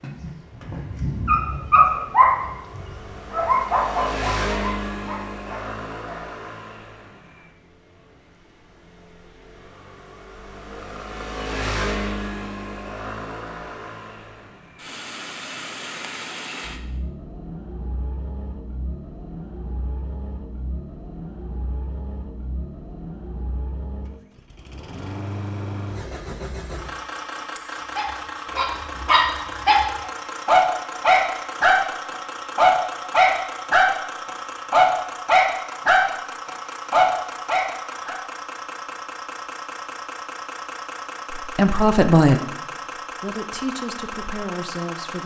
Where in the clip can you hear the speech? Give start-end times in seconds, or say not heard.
41.3-45.2.